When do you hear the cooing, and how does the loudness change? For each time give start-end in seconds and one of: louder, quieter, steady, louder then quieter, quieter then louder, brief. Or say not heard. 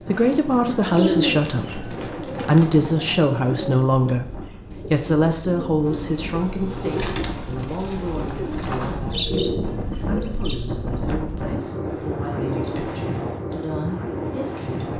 0.5-10.6 quieter then louder.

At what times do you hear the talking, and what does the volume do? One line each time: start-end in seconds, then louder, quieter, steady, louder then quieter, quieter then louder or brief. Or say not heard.
0.1-14.9 quieter.